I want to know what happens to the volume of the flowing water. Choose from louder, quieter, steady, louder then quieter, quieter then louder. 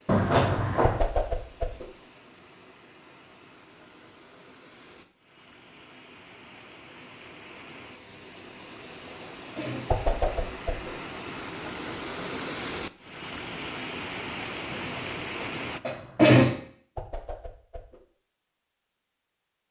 louder.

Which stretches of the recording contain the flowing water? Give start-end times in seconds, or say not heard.
0.0-15.8.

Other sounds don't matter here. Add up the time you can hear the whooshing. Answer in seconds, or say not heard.
3 s.